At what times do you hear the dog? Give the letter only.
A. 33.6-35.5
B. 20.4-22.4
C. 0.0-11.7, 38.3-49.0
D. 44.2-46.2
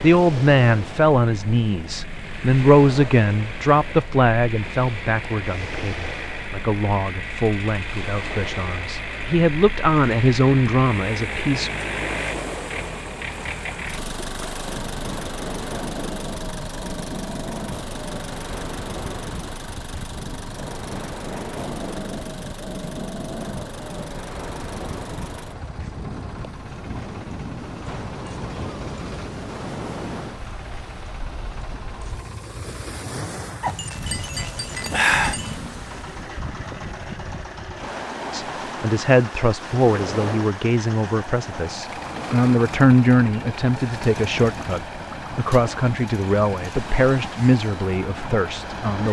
A.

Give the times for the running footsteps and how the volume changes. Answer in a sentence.
The running footsteps can't be heard in this clip.